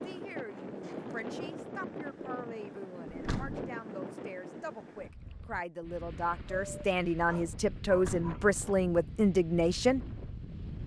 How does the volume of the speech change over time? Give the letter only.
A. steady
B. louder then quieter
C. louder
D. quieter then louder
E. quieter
C.